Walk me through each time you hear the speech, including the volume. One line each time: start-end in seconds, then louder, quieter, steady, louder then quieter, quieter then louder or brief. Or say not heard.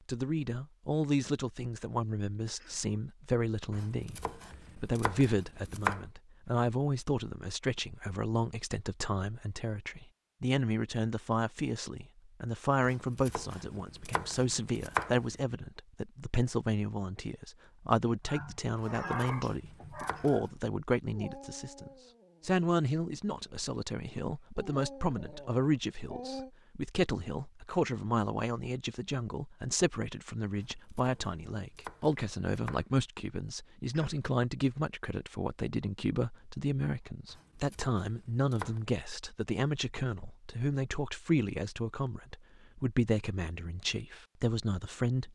0.1-45.3 steady.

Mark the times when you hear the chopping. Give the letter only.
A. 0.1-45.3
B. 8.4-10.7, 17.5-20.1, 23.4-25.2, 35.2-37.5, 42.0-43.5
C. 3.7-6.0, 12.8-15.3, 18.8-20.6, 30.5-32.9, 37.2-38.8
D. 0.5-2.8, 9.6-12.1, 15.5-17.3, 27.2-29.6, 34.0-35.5
C.